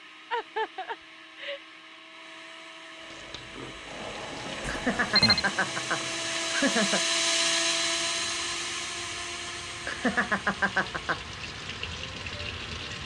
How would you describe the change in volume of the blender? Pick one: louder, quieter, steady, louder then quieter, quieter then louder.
louder then quieter.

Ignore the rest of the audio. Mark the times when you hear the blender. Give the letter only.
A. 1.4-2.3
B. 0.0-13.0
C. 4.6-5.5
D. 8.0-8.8
B.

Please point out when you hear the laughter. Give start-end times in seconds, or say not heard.
0.3-1.6, 4.7-7.0, 9.8-11.2.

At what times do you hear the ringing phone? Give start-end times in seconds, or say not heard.
4.6-5.5.